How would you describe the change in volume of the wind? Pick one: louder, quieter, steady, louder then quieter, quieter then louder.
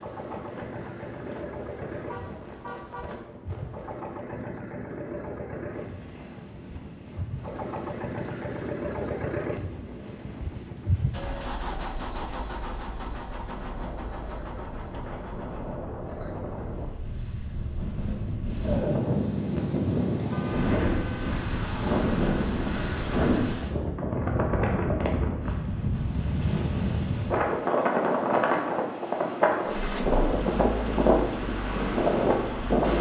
louder.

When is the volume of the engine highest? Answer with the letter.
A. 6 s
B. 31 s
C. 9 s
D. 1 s
C.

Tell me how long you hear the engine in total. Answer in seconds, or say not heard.
19 s.